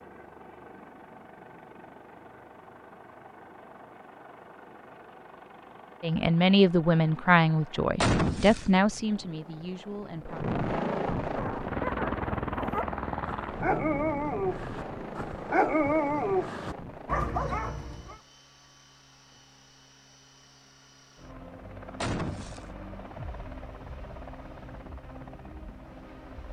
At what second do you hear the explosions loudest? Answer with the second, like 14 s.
8 s.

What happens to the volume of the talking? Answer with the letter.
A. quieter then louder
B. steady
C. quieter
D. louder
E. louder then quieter
C.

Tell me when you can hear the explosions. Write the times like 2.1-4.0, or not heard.
8.0-8.7, 22.0-22.7.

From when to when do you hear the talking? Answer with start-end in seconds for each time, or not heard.
6.0-10.4.